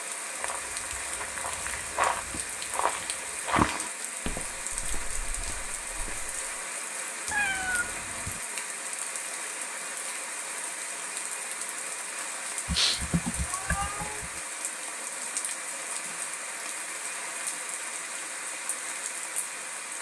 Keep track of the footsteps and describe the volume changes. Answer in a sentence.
The volume of the footsteps goes up, then down.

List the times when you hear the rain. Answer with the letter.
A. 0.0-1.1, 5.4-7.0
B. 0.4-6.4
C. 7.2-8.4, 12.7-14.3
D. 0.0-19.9
D.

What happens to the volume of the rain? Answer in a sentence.
The volume of the rain stays about the same.